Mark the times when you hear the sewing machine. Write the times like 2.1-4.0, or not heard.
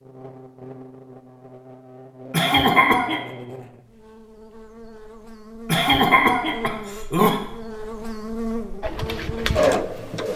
8.8-10.3.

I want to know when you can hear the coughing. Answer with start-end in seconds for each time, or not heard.
2.3-3.2, 5.7-7.4.